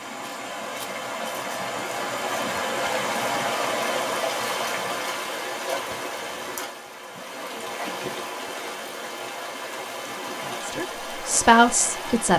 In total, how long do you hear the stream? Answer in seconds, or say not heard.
12 s.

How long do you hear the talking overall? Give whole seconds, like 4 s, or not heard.
2 s.